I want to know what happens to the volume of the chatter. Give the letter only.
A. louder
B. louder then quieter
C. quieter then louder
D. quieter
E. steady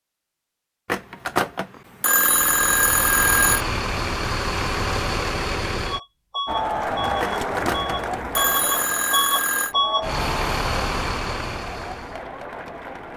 D.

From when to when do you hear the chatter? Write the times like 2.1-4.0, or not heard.
6.5-13.1.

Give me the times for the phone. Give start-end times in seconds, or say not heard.
0.8-3.6, 7.2-9.8.